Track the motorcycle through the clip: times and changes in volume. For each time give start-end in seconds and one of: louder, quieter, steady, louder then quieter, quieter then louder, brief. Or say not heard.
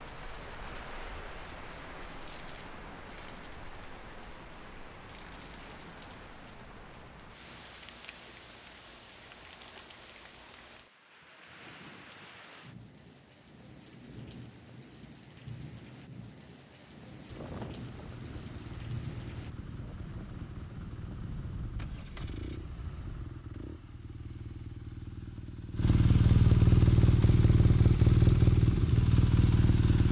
17.2-30.0 louder.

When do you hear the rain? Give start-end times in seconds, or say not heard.
0.0-23.4.